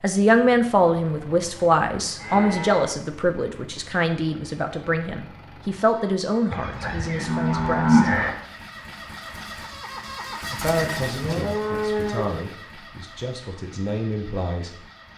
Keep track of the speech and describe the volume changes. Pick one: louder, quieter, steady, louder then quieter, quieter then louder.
quieter.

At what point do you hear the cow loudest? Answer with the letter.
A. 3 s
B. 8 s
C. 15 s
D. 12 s
B.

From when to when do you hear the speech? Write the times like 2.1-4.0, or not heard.
0.0-8.1, 10.5-14.8.